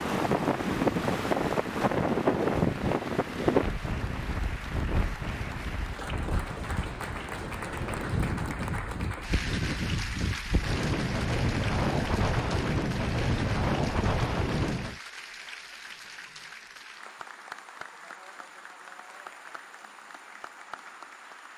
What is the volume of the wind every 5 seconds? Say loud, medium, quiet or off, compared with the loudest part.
loud, medium, loud, off, off.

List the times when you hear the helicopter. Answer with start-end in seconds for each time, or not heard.
not heard.